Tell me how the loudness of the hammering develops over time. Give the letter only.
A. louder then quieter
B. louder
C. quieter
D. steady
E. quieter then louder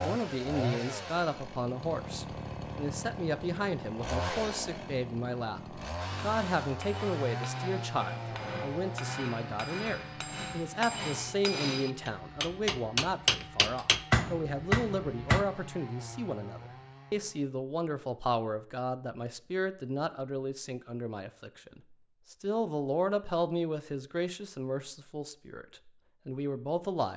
B.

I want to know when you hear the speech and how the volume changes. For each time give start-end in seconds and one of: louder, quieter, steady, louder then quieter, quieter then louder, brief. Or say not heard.
0.0-27.1 steady.